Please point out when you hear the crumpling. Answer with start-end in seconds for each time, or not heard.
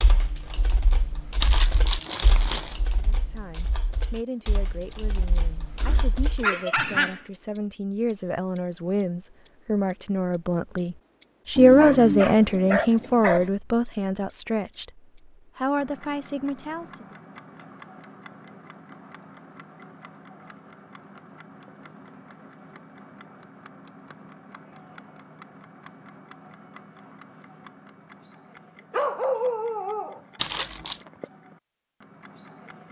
1.4-2.8, 30.4-31.1.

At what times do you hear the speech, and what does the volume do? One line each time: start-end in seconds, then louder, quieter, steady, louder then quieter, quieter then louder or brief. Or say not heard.
3.0-17.1 louder then quieter.